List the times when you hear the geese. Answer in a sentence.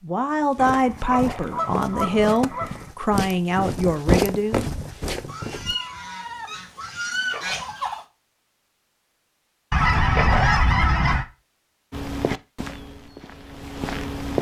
You can hear the geese from 0.6 to 2.9 s, from 5.2 to 8.1 s and from 9.7 to 11.2 s.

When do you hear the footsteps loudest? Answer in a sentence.
The volume of the footsteps peaks at 4 seconds.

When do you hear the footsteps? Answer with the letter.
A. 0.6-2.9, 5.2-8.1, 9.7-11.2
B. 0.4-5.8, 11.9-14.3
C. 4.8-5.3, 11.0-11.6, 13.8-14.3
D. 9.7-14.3
B.